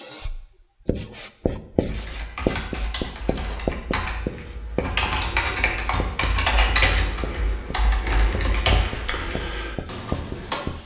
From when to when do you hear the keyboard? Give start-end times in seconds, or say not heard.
1.9-10.6.